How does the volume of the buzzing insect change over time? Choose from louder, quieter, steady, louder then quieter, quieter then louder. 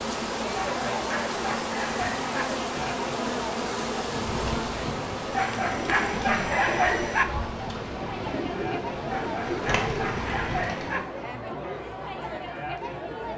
quieter.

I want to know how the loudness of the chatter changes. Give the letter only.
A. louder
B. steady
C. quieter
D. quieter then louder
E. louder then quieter
B.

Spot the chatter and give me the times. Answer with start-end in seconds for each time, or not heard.
0.1-13.3.